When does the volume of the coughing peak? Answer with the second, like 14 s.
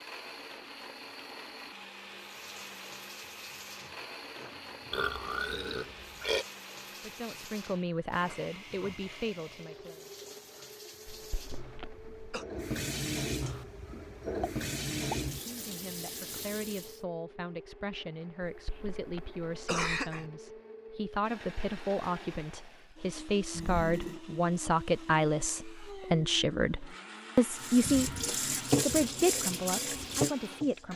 20 s.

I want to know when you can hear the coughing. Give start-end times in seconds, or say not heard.
11.1-12.4, 18.4-20.2.